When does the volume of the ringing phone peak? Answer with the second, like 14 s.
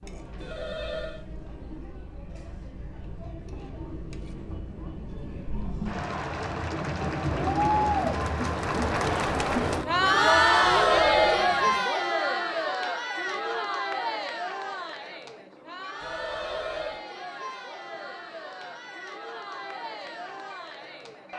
11 s.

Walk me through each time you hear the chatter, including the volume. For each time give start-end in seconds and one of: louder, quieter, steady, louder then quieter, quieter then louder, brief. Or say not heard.
0.0-21.3 louder then quieter.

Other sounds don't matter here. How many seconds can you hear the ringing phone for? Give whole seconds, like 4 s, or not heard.
3 s.